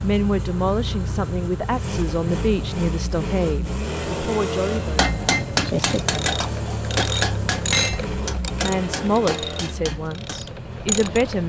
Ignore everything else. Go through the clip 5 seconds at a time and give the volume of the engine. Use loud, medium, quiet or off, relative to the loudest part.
loud, loud, medium.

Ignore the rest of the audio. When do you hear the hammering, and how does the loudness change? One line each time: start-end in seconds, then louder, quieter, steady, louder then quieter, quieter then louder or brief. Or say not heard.
5.0-10.4 quieter.